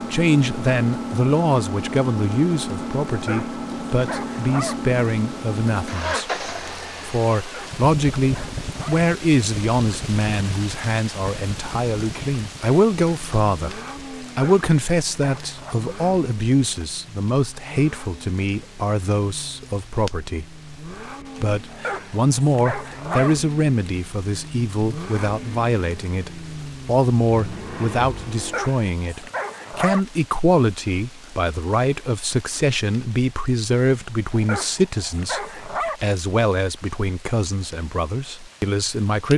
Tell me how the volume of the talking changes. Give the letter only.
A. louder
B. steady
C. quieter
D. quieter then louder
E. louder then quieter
B.